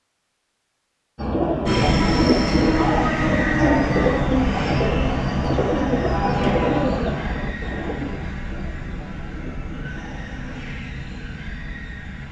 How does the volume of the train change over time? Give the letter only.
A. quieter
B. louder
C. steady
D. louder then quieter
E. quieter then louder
A.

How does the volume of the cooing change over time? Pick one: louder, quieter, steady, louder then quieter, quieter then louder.
quieter.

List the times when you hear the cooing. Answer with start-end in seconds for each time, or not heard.
1.1-10.7.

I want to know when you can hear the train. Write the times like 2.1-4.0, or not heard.
1.6-12.2.